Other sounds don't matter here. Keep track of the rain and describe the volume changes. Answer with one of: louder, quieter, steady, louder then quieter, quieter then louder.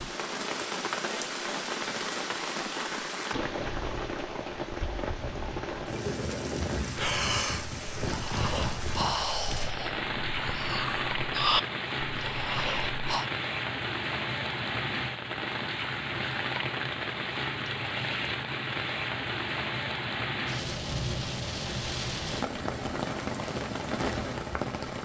steady.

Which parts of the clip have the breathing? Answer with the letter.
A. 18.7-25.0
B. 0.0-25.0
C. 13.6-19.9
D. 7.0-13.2
D.